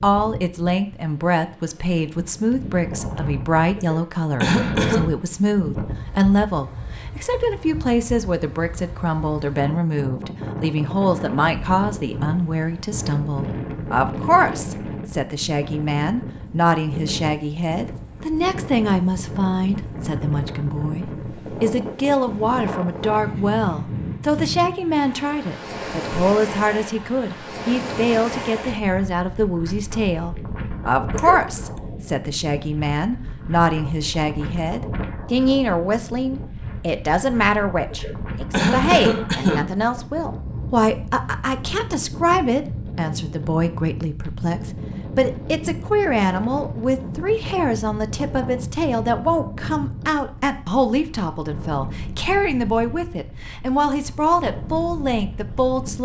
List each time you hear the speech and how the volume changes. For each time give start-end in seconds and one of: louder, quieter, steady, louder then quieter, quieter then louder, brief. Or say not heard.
0.0-56.0 steady.